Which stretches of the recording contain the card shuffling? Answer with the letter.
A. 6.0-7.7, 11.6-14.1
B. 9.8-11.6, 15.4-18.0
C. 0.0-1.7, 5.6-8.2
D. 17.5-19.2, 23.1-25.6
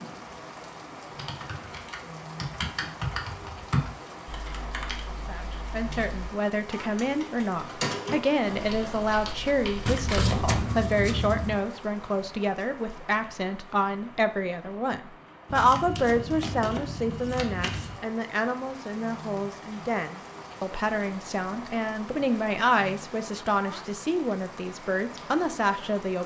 B.